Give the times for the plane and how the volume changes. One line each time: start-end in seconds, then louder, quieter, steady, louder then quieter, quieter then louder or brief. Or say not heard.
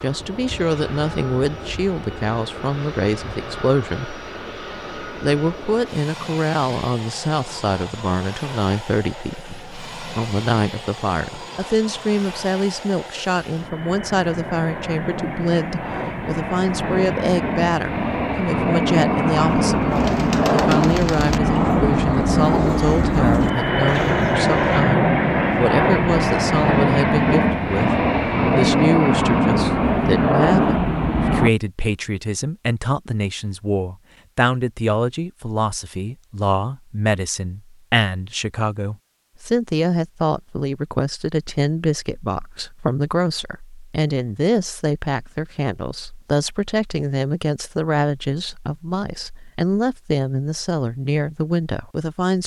0.0-31.5 louder.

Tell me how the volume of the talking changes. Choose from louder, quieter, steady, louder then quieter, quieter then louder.
steady.